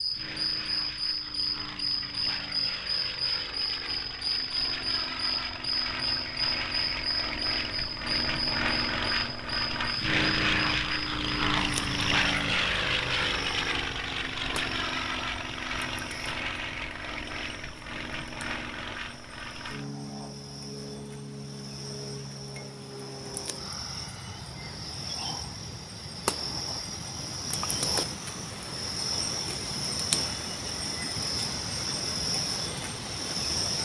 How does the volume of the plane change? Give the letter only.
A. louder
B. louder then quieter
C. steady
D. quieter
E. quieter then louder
B.